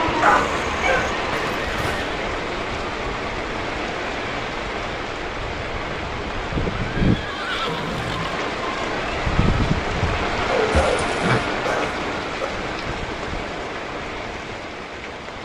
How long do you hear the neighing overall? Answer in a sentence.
You can hear the neighing for 3 seconds altogether.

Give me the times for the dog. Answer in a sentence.
You can hear the dog from 0.2 to 1.1 s and from 10.5 to 12.5 s.